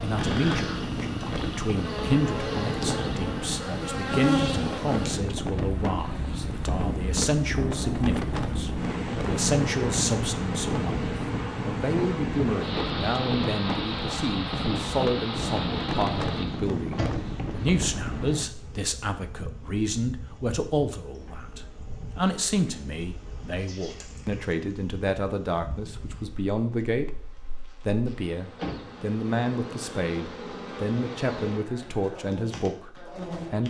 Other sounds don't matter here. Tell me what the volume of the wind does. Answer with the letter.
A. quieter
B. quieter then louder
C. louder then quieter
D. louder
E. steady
E.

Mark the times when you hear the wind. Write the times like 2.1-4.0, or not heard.
0.0-18.4.